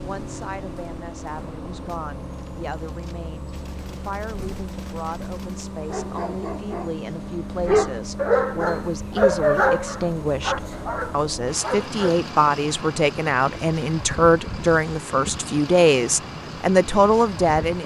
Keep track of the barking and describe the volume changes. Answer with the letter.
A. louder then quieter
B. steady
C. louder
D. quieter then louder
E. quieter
A.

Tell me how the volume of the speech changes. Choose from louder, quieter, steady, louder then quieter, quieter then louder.
louder.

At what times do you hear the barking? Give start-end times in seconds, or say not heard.
5.8-12.2.